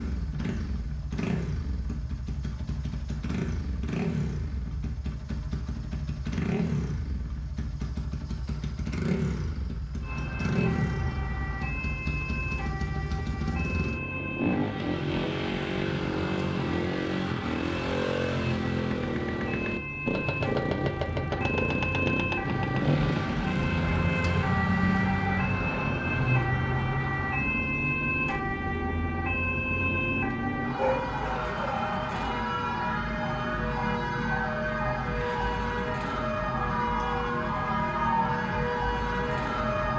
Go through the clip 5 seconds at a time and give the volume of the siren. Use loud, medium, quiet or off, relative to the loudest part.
off, off, medium, medium, loud, loud, loud, loud.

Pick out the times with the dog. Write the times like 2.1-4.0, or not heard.
30.8-31.8.